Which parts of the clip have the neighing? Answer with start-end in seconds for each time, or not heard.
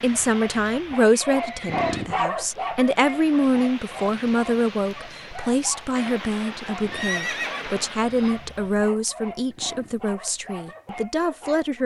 1.1-2.0, 6.9-8.4.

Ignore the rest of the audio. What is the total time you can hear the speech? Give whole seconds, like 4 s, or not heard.
12 s.